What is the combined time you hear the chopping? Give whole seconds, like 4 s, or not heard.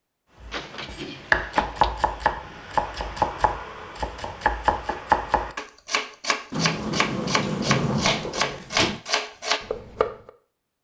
10 s.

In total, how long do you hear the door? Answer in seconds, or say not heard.
4 s.